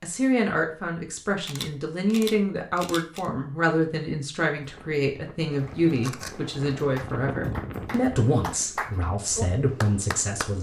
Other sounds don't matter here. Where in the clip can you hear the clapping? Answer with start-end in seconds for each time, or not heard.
7.0-10.5.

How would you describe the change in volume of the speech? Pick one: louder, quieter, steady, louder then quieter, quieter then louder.
steady.